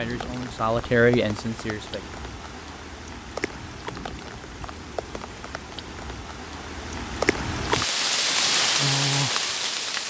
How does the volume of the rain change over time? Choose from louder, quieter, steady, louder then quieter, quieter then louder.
louder.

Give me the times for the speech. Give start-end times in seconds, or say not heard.
0.0-2.0.